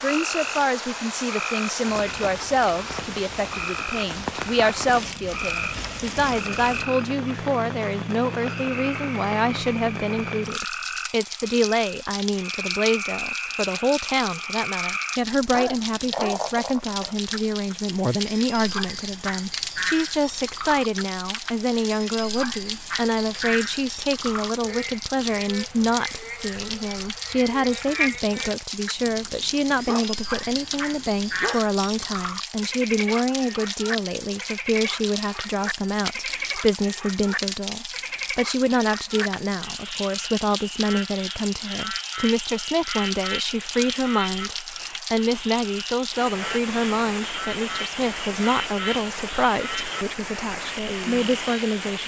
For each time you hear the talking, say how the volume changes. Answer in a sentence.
The talking can be heard from 0.0 to 52.0 s, at a steady volume.